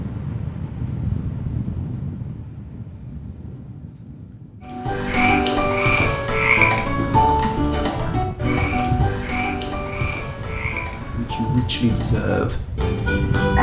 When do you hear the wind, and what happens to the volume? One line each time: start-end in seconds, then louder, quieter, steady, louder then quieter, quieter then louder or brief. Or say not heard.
0.0-13.5 quieter then louder.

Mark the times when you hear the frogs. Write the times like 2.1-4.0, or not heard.
4.7-13.5.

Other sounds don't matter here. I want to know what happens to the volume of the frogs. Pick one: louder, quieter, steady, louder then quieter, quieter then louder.
quieter.